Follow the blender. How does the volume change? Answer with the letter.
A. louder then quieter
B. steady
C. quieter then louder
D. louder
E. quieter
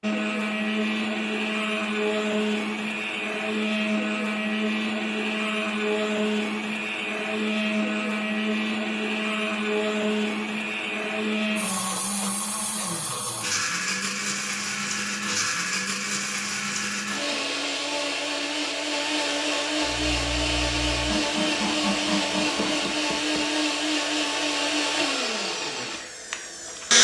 B.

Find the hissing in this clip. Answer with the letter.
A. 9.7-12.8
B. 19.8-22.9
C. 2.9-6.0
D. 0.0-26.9
B.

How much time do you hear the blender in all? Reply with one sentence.
The blender can be heard for 27 seconds in total.